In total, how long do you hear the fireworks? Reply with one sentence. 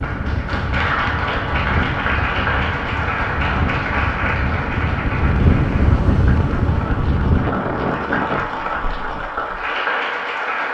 The fireworks can't be heard in this clip.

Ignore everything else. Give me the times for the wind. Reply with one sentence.
You can hear the wind from 0.0 to 8.4 s.